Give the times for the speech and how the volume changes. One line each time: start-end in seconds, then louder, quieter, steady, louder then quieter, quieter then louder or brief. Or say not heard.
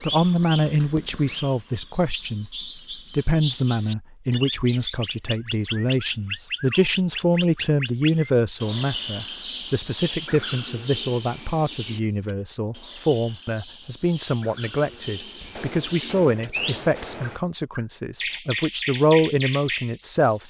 0.0-20.4 steady.